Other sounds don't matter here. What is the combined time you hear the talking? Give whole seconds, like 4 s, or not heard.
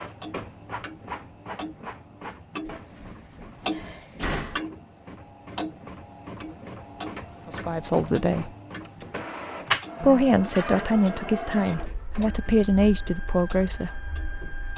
5 s.